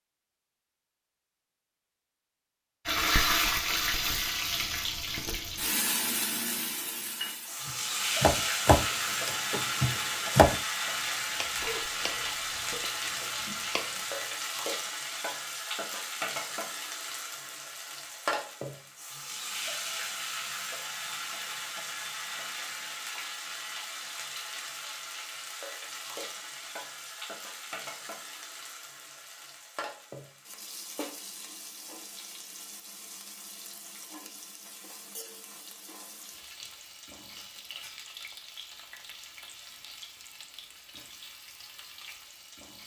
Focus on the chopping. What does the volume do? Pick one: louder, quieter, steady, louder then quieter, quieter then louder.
quieter.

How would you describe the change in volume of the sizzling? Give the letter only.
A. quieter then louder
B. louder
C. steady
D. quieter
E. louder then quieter
D.